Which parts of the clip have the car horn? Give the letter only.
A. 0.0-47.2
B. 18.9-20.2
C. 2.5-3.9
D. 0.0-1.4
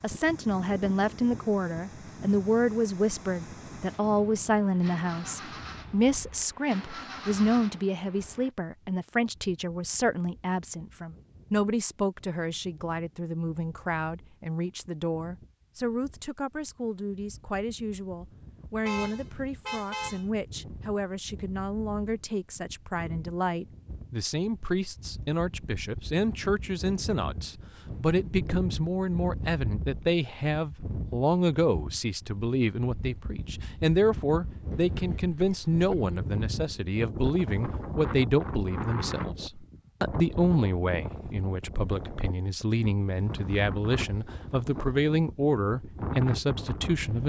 B.